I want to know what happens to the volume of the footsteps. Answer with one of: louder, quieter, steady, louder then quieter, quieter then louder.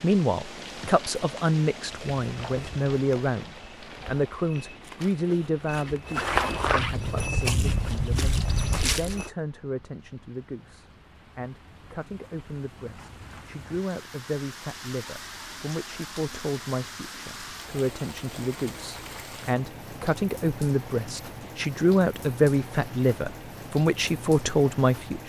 louder.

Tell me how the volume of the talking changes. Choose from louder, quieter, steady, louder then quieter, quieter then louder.
quieter then louder.